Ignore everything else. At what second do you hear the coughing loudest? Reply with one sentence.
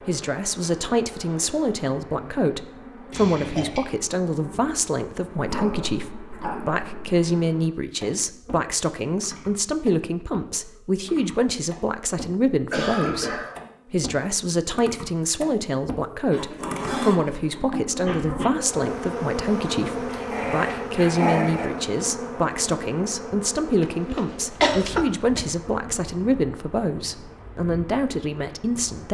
The volume of the coughing peaks at 25 seconds.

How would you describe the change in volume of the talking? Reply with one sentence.
The volume of the talking stays about the same.